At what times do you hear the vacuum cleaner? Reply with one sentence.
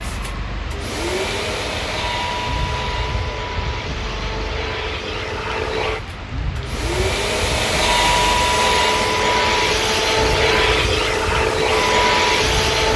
You can hear the vacuum cleaner from 0.0 to 12.9 s.